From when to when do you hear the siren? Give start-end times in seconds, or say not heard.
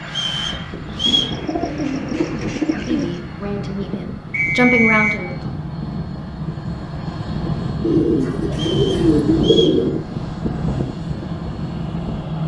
not heard.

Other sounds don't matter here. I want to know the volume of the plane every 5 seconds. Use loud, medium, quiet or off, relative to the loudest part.
medium, loud, loud.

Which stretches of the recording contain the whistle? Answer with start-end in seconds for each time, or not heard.
0.1-1.4, 4.3-5.2, 8.6-9.8.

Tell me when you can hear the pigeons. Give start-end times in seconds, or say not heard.
1.1-3.2, 7.8-10.1.